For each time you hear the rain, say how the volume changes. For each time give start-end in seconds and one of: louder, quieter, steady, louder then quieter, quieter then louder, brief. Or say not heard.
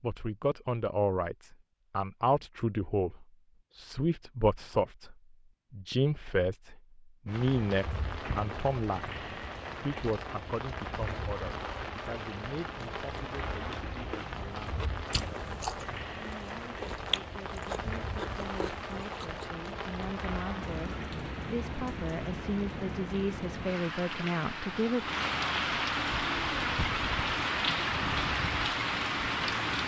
7.2-29.8 louder.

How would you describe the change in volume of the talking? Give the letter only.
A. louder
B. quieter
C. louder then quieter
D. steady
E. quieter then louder
E.